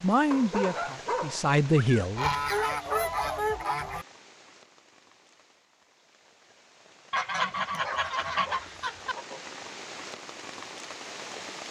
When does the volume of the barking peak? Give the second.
1 s.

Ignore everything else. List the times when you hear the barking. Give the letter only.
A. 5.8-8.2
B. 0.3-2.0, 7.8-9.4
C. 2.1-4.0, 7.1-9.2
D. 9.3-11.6
B.